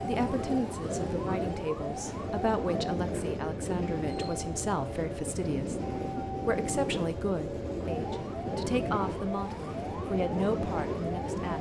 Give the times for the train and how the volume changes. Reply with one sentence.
The train can be heard from 0.0 to 11.5 s, at a steady volume.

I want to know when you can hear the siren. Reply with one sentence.
The siren can be heard from 0.0 to 3.0 s and from 7.8 to 11.5 s.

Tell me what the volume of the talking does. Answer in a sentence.
The volume of the talking stays about the same.